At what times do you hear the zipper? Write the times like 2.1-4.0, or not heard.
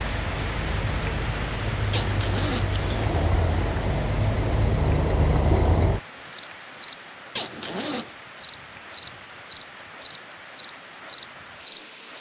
1.9-3.1, 7.3-8.1.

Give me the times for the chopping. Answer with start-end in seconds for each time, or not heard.
not heard.